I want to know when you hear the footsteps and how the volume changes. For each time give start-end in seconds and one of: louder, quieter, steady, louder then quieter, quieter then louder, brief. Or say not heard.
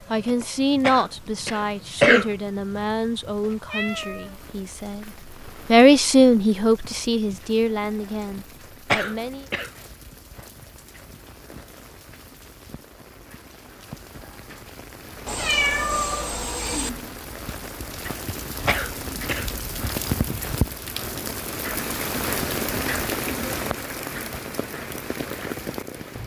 not heard.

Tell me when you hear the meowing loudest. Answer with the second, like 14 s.
16 s.